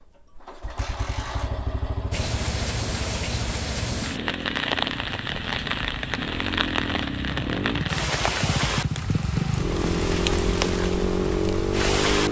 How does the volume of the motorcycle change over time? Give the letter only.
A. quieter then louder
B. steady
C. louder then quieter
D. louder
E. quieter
D.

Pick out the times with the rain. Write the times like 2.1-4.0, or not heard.
2.1-12.2.